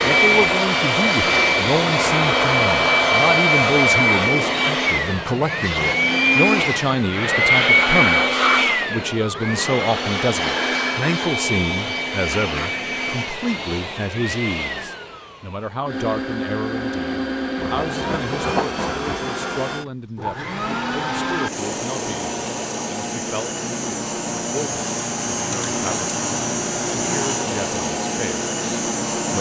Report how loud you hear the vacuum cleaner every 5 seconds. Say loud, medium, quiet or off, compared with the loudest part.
loud, loud, medium, medium, medium, medium.